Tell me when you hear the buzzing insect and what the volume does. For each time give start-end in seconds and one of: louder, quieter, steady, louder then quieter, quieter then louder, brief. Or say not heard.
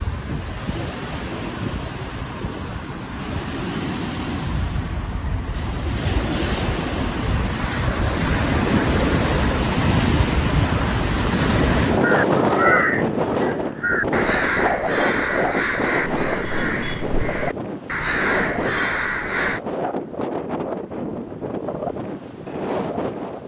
not heard.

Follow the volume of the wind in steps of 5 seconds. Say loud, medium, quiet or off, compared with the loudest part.
medium, loud, loud, medium, medium.